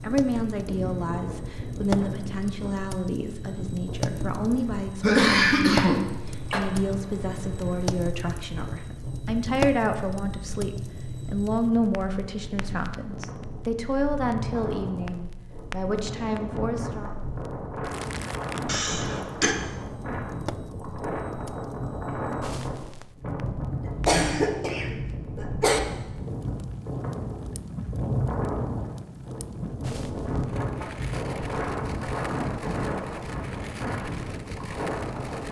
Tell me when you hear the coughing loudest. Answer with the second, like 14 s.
5 s.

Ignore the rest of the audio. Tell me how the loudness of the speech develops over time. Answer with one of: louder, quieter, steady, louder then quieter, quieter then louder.
steady.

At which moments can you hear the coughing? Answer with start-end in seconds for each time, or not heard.
5.0-6.6, 18.6-19.6, 23.9-25.8.